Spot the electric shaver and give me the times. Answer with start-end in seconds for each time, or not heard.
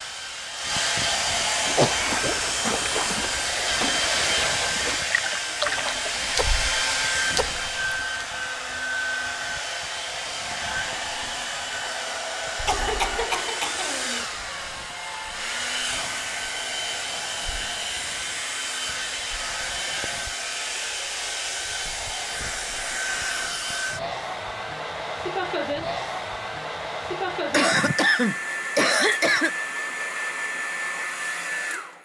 not heard.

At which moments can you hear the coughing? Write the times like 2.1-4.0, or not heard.
1.8-2.4, 12.7-14.2, 27.5-29.6.